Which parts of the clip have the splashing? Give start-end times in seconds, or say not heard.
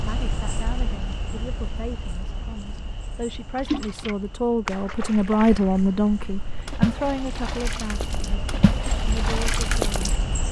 3.5-10.2.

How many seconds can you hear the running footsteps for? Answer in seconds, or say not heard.
not heard.